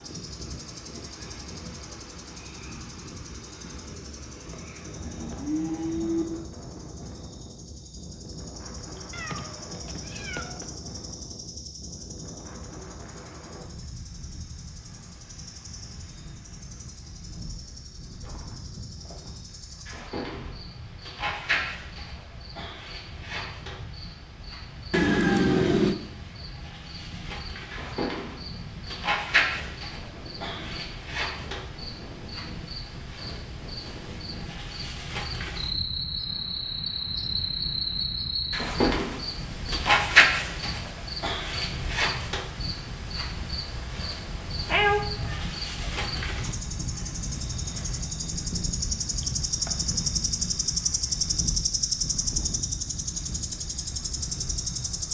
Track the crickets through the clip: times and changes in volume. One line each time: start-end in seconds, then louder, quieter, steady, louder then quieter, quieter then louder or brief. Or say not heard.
0.0-55.0 louder.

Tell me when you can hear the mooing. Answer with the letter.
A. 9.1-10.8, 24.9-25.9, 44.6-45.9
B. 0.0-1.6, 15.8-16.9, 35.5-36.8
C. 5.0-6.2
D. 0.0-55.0
C.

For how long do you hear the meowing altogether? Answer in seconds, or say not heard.
4 s.